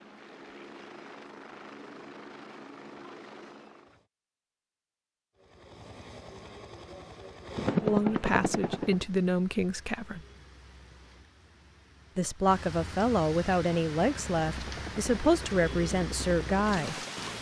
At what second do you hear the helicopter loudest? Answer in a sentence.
The loudest moment of the helicopter is at 8 seconds.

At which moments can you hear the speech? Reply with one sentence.
The speech can be heard from 7.8 to 10.2 s and from 12.2 to 16.9 s.